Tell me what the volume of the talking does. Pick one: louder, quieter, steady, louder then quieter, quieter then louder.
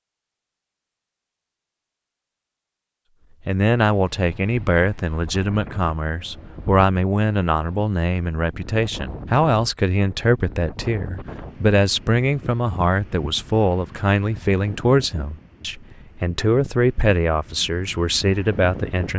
steady.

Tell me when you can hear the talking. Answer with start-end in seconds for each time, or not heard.
3.5-19.1.